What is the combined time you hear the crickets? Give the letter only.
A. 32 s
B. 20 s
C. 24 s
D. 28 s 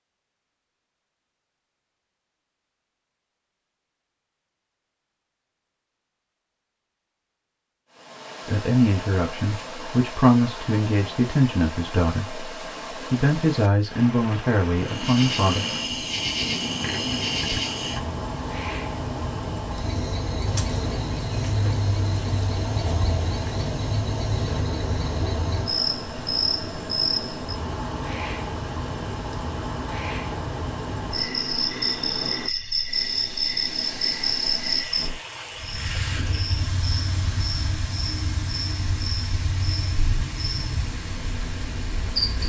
D.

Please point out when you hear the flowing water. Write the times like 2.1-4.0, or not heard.
7.9-42.4.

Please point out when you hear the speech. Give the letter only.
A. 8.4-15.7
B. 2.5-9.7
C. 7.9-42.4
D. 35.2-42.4
A.